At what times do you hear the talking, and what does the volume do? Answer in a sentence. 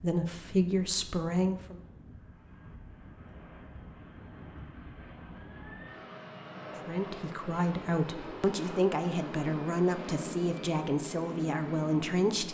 The talking can be heard briefly from 0.0 to 1.8 s; and from 6.8 to 12.4 s, at a steady volume.